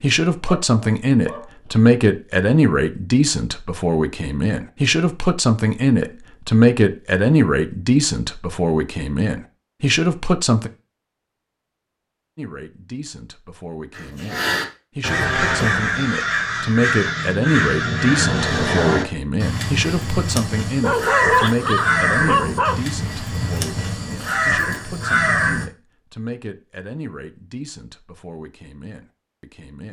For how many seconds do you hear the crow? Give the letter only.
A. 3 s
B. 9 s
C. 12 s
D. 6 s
C.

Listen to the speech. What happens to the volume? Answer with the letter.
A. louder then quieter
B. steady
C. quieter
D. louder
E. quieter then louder
C.